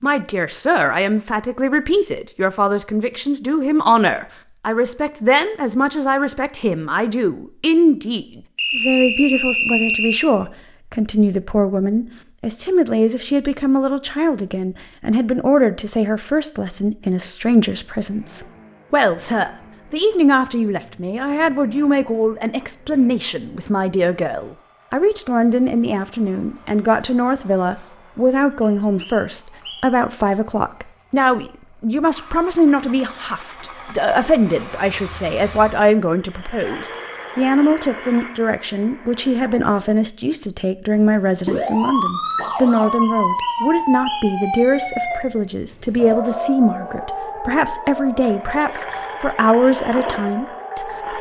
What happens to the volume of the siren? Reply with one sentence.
The loudness of the siren goes down.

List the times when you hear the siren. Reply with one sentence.
You can hear the siren from 41.0 to 51.1 s.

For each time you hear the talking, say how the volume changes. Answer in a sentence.
The talking can be heard from 0.0 to 51.1 s, at a steady volume.